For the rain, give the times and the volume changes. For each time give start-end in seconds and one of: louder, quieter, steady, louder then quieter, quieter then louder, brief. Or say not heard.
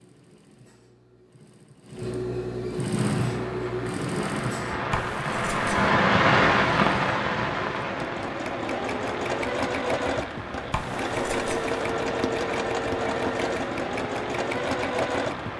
3.0-15.5 louder then quieter.